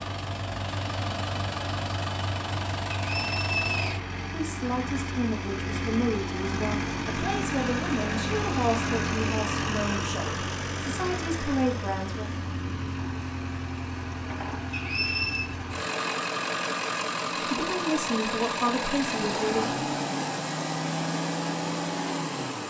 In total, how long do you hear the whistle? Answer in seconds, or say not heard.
2 s.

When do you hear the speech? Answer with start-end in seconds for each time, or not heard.
4.2-12.2, 17.4-19.8.